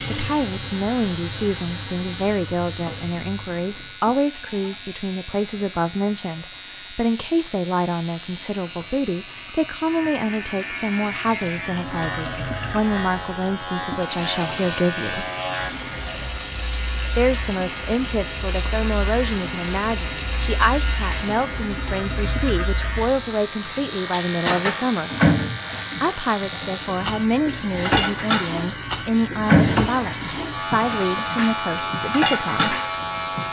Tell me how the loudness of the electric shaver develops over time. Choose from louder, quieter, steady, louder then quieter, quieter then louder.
louder.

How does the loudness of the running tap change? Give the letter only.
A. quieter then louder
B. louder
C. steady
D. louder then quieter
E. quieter
B.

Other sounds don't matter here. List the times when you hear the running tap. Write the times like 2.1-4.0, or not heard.
0.0-33.4.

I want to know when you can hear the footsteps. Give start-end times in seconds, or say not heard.
not heard.